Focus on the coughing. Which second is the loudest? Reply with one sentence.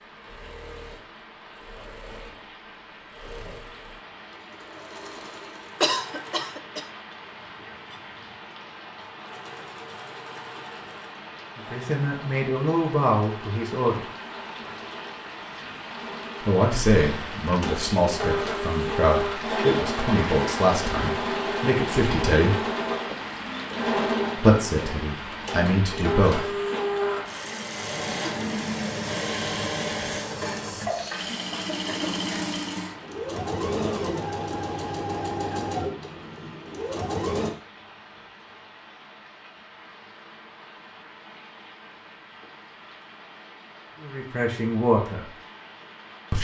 The volume of the coughing peaks at 6 seconds.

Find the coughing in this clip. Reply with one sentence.
You can hear the coughing from 5.8 to 6.8 s, from 16.9 to 17.4 s and from 31.2 to 32.4 s.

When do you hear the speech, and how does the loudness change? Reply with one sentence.
You can hear the speech briefly from 11.6 to 14.1 s; from 16.4 to 22.6 s, at a steady volume; briefly from 24.4 to 26.5 s; and briefly from 44.0 to 45.3 s.